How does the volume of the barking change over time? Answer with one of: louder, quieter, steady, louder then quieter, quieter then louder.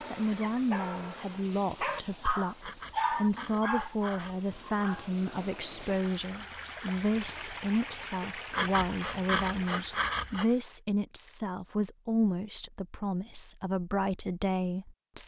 louder then quieter.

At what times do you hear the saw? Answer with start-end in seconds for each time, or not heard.
2.6-4.4, 8.5-10.4.